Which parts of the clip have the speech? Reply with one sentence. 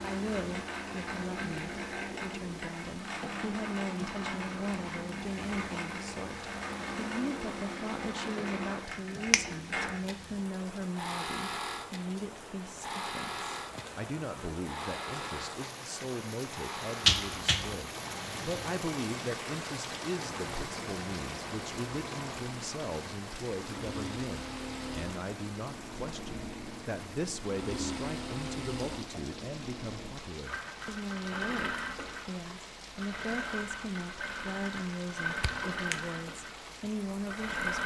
The speech can be heard from 0.0 to 37.8 s.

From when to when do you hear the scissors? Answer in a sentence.
You can't hear the scissors here.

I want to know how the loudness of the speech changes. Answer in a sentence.
The loudness of the speech stays about the same.